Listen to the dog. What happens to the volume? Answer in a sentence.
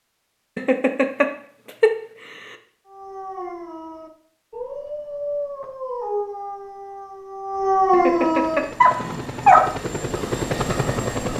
The volume of the dog goes up.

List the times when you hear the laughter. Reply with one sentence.
You can hear the laughter from 0.6 to 2.5 s and from 7.9 to 8.7 s.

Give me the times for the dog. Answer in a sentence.
You can hear the dog from 2.9 to 9.7 s.